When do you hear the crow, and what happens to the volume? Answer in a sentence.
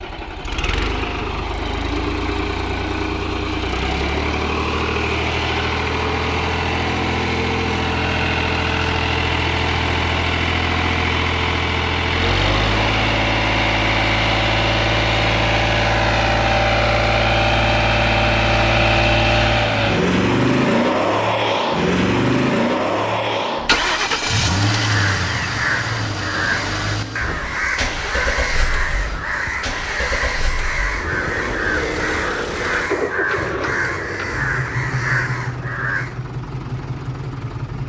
The crow can be heard from 24.7 to 36.2 s, at a steady volume.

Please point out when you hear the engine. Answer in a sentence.
You can hear the engine from 0.0 to 37.8 s.